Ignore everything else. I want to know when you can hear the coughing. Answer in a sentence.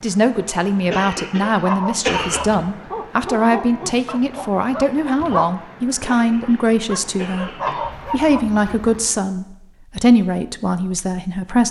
The coughing can be heard from 0.9 to 2.6 s and from 6.0 to 8.0 s.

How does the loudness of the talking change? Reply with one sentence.
The volume of the talking stays about the same.